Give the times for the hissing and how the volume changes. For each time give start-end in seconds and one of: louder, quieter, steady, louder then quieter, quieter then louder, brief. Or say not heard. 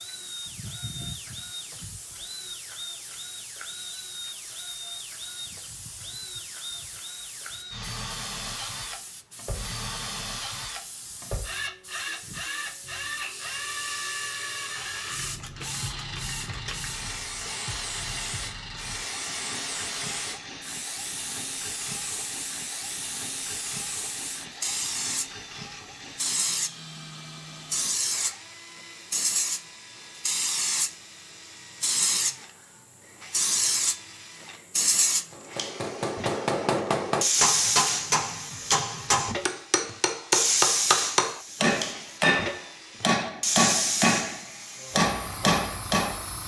0.0-46.4 louder.